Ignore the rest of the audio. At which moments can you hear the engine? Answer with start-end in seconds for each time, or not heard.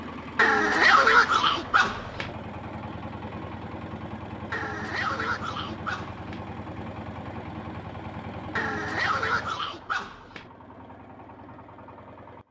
0.0-12.4.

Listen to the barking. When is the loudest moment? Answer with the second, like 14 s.
1 s.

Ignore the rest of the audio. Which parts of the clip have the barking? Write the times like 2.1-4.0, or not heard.
0.3-2.3, 4.5-6.5, 8.6-10.4.